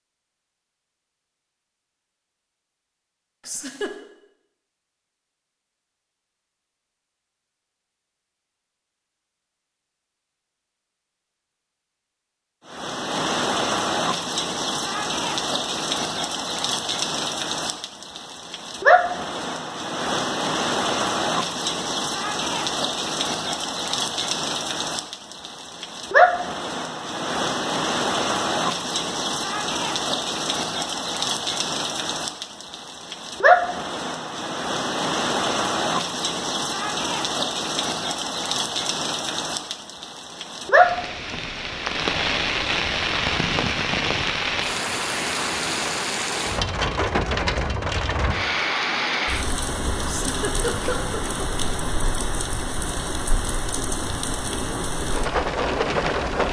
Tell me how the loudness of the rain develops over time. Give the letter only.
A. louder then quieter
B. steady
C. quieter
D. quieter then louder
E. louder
B.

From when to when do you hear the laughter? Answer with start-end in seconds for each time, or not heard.
3.4-4.0, 50.0-51.7.